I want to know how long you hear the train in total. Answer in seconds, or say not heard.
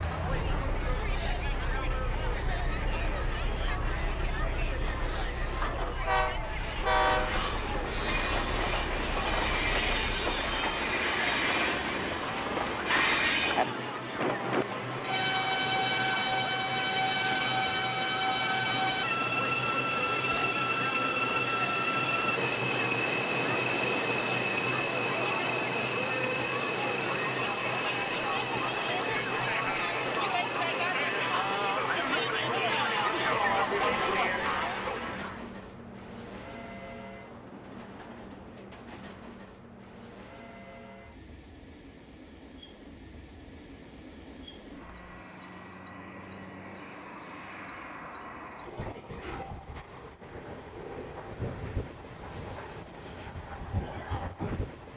55 s.